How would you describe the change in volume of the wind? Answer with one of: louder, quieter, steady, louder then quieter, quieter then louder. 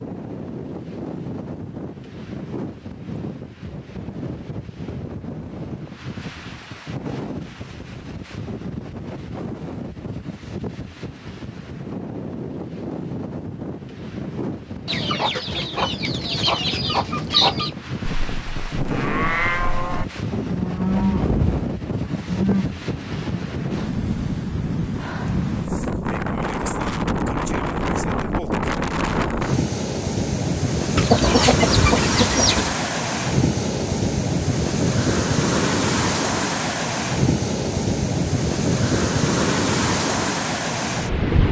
louder.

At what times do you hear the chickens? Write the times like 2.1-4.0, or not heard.
14.8-17.7, 30.9-32.8.